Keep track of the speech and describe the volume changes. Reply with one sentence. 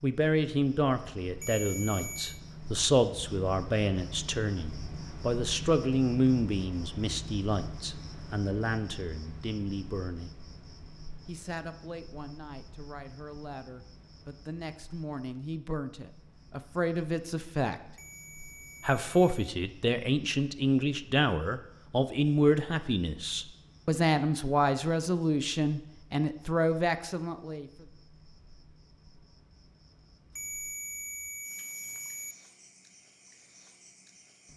The volume of the speech goes down, then up.